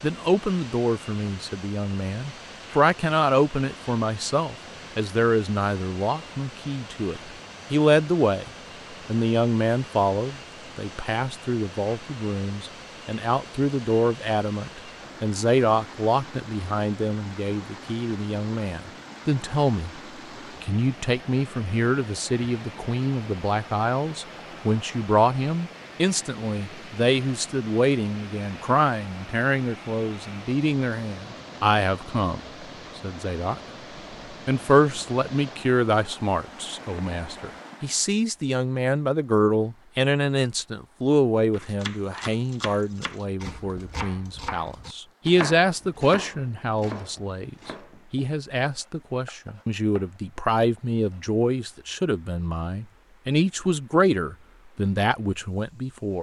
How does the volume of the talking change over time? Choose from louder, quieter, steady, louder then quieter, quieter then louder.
steady.